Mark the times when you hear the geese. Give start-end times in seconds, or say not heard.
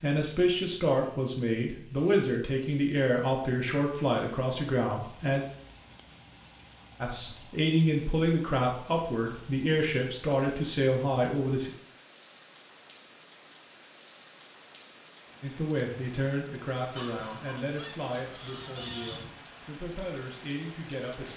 16.9-19.4.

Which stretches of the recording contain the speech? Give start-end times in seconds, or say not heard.
0.0-5.4, 7.0-11.7, 15.4-21.3.